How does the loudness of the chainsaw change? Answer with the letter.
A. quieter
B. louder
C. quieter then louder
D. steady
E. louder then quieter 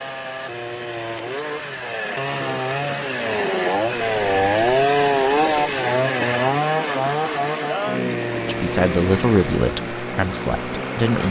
E.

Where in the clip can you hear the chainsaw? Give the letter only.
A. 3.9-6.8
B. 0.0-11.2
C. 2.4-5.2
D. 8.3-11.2
B.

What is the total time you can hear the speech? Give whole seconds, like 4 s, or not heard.
3 s.